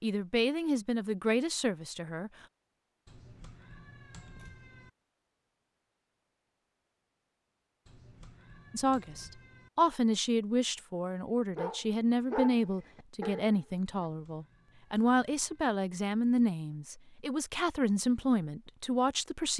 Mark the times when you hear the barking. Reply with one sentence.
The barking can be heard from 11.6 to 13.6 s.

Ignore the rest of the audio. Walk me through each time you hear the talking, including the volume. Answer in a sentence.
The talking can be heard briefly from 0.0 to 2.3 s; and from 8.7 to 19.5 s, at a steady volume.